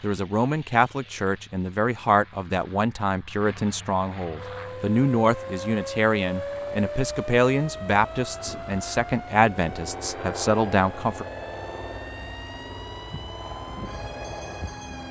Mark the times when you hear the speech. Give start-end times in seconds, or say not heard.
0.0-11.2.